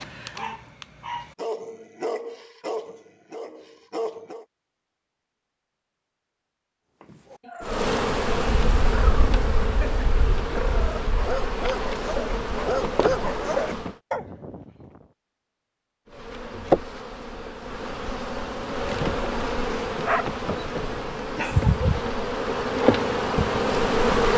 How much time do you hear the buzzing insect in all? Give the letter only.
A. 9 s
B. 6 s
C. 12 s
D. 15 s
D.